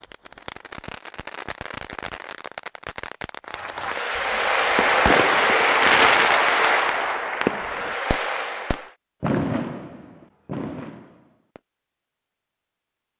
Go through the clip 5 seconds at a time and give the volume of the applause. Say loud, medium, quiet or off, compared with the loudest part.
loud, loud, off.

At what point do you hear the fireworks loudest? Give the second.
6 s.